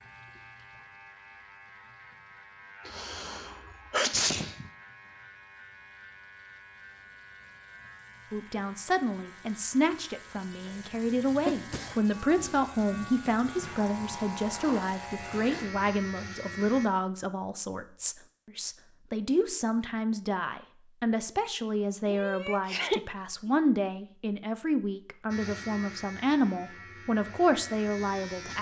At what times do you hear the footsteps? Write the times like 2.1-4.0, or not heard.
not heard.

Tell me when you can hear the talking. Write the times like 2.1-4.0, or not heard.
8.3-28.5.